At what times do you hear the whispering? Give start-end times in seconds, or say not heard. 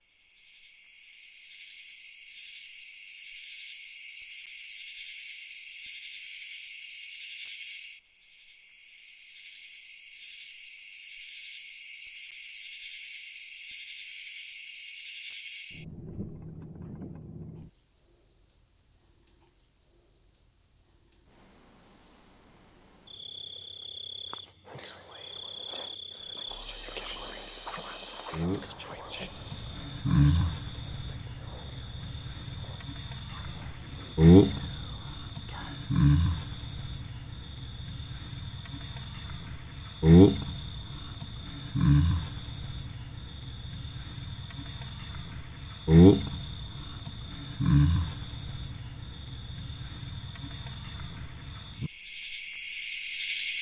24.6-35.9.